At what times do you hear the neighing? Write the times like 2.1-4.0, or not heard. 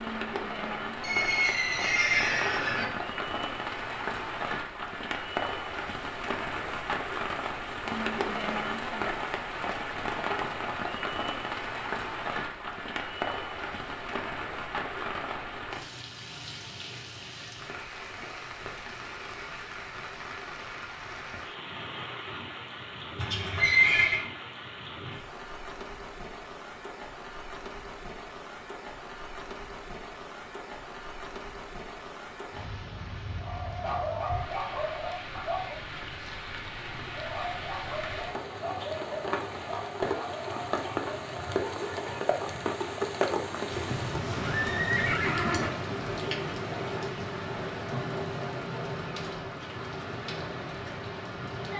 1.0-2.9, 23.1-24.2, 43.7-45.7.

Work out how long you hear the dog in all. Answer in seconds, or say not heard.
8 s.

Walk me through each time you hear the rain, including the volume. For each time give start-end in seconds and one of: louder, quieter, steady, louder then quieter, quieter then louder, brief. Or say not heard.
0.0-51.7 quieter then louder.